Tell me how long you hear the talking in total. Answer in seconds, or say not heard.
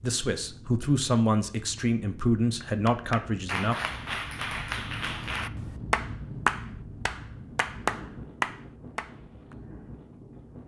4 s.